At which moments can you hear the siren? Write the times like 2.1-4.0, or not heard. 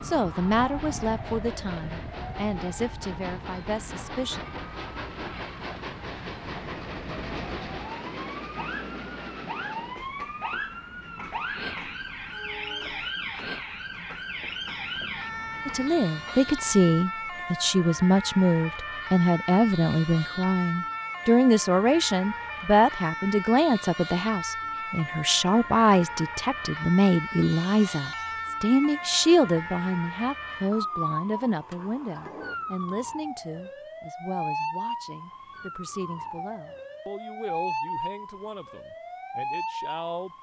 0.0-40.3.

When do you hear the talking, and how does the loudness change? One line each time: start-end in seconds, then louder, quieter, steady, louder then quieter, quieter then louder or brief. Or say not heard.
0.0-4.4 quieter
15.7-40.3 quieter.